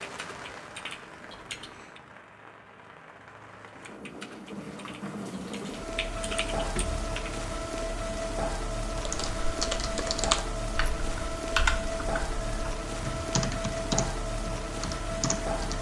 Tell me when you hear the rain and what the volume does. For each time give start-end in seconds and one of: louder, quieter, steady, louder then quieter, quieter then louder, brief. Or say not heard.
0.0-15.7 louder.